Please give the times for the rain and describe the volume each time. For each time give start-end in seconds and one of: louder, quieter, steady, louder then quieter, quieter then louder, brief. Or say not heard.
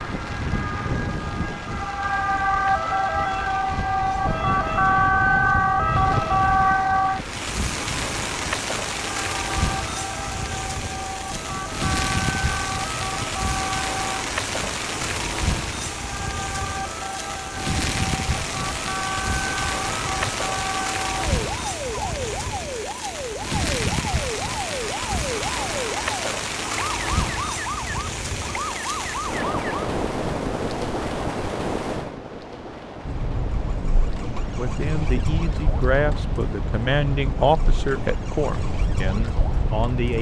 0.0-40.1 louder then quieter.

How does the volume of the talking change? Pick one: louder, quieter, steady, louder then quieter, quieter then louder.
louder then quieter.